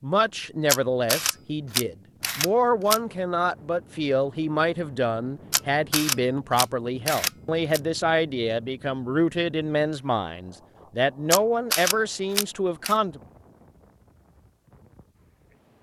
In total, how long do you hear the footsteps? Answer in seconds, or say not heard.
not heard.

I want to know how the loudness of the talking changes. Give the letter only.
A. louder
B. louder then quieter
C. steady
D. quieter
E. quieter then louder
C.